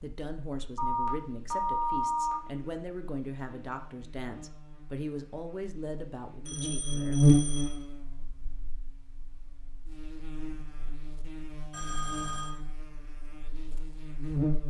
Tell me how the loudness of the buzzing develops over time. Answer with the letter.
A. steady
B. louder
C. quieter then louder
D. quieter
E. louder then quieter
E.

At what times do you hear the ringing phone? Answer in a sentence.
The ringing phone can be heard from 0.8 to 2.4 s, from 6.5 to 7.8 s and from 11.7 to 12.6 s.